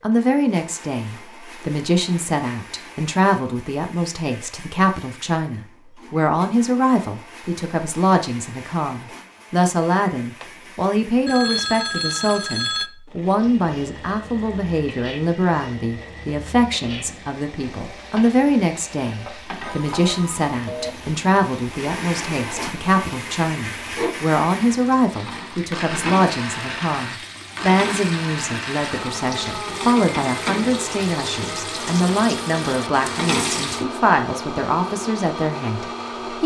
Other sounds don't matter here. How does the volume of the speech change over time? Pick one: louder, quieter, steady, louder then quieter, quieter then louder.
steady.